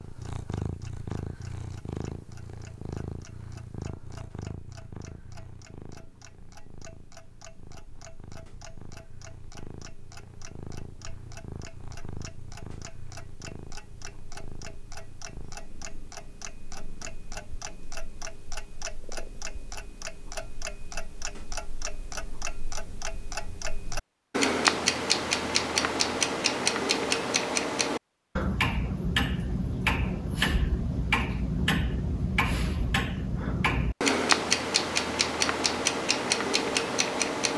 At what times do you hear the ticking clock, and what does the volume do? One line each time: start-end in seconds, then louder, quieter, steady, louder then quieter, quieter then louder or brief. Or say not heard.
0.0-37.5 louder.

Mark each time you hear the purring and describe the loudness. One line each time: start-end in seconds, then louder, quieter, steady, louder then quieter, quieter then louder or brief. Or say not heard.
0.0-18.4 quieter.